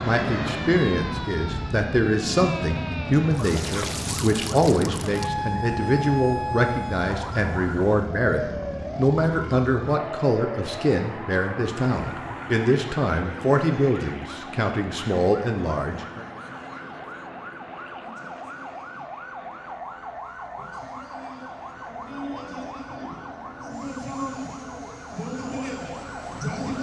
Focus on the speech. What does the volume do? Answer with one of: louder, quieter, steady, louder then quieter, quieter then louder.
steady.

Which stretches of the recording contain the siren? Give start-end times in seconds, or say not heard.
0.0-26.7.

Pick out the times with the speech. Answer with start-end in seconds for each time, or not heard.
0.0-16.2.